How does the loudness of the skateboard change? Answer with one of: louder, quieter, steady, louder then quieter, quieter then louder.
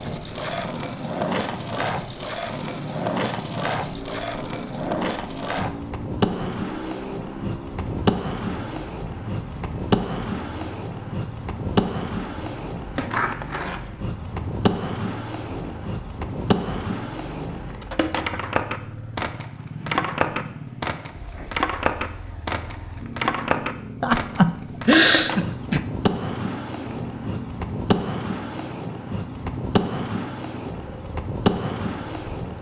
steady.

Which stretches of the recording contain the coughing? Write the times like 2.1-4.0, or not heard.
24.0-25.8.